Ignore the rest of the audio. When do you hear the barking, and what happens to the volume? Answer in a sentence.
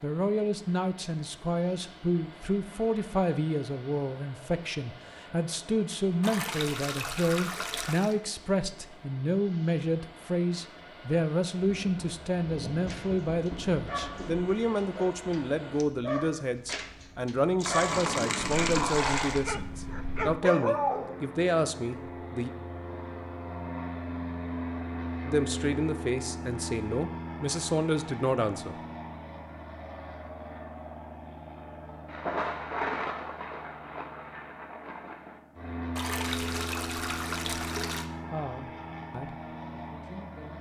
The barking can be heard from 12.8 to 21.2 s, getting louder.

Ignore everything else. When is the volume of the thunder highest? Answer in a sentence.
The loudest moment of the thunder is at 33 seconds.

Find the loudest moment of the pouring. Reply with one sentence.
The loudest moment of the pouring is at 19 seconds.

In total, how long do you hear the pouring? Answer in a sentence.
The pouring can be heard for 6 seconds in total.